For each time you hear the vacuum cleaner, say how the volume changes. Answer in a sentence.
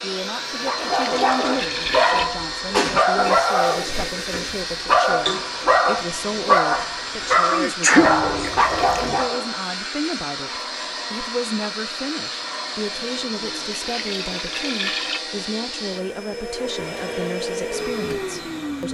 You can hear the vacuum cleaner from 0.0 to 18.8 s, at a steady volume.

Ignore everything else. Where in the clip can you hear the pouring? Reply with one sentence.
You can hear the pouring from 0.8 to 2.2 s, from 8.0 to 9.3 s and from 13.7 to 15.2 s.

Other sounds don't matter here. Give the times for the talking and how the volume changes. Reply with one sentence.
The talking can be heard from 0.0 to 18.8 s, at a steady volume.